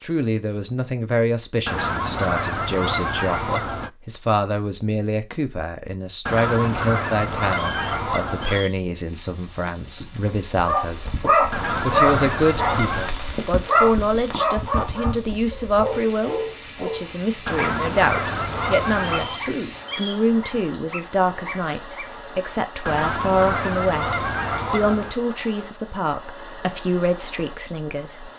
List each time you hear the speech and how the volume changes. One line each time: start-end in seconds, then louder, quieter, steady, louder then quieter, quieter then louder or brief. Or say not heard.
0.0-28.3 steady.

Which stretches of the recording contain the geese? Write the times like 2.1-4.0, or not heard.
1.6-3.9, 6.2-8.7, 11.5-13.2, 17.4-19.4, 22.9-25.1.